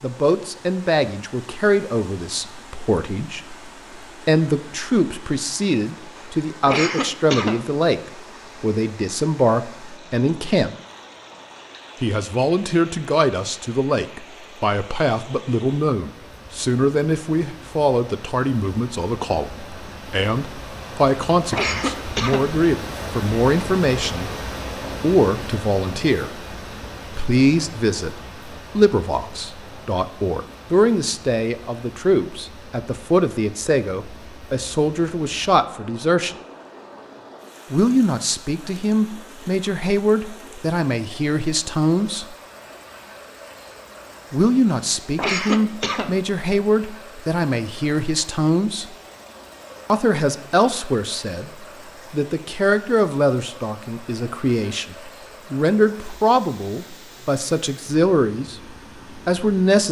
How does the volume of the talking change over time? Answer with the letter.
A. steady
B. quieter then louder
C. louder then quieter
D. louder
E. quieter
A.